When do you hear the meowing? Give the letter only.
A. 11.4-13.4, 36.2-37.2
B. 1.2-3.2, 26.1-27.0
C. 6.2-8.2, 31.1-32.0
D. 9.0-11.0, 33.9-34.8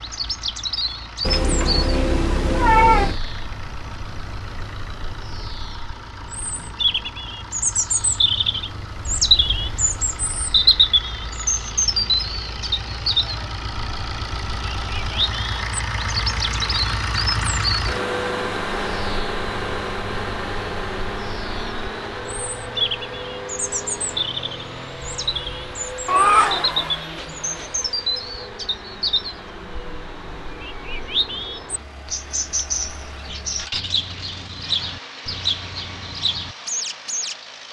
B.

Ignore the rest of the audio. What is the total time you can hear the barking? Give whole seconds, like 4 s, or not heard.
not heard.